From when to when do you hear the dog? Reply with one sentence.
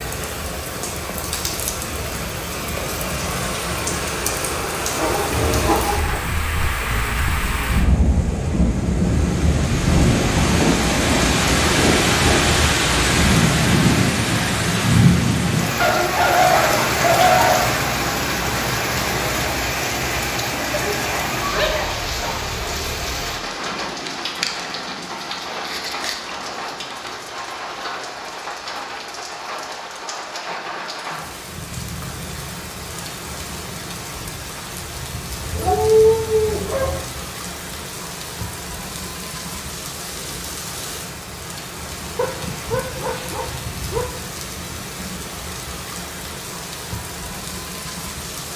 The dog can be heard from 4.8 to 6.2 s, from 15.8 to 17.7 s, from 20.7 to 22.4 s, from 35.5 to 37.0 s and from 42.1 to 44.0 s.